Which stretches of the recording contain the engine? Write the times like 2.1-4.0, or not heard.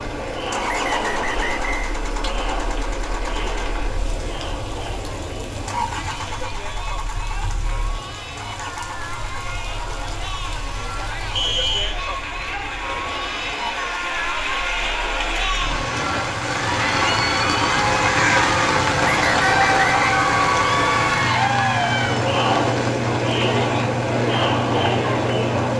0.0-25.7.